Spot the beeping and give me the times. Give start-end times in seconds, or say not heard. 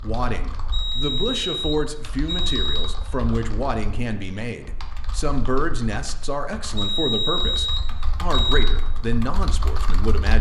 0.7-3.0, 6.8-8.6.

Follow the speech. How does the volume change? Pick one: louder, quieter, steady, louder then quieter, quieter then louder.
steady.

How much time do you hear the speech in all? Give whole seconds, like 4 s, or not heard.
10 s.